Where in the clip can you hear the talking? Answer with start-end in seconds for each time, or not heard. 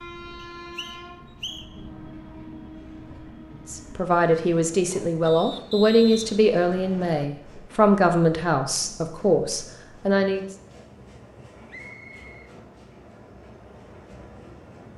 3.6-10.4.